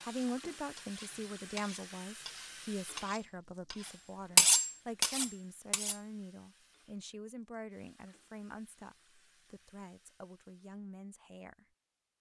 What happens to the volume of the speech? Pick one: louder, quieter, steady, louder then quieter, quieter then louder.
quieter.